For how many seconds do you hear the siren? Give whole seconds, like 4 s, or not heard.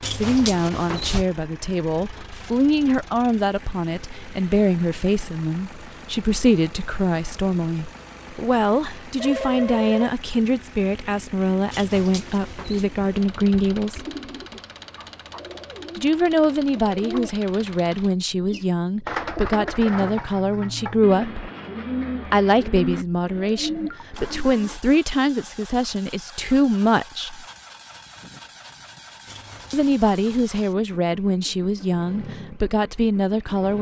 not heard.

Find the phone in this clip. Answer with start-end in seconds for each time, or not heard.
9.2-10.2, 23.4-24.0.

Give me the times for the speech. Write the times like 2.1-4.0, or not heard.
0.1-14.1, 15.9-21.4, 22.2-27.4, 29.7-33.7.